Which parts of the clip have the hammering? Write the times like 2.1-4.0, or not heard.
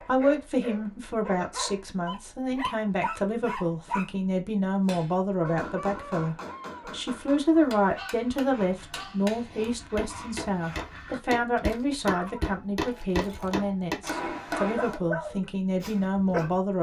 4.8-15.0.